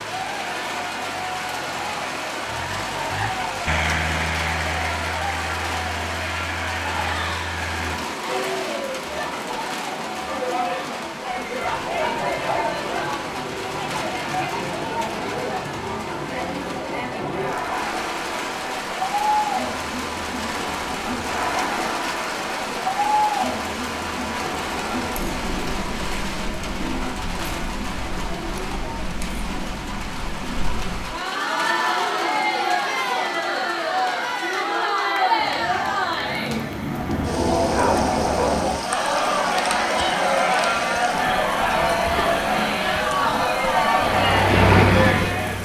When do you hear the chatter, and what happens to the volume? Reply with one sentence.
The chatter can be heard from 0.0 to 45.6 s, getting louder.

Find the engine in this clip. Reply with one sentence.
The engine can be heard from 0.0 to 8.0 s and from 44.0 to 45.6 s.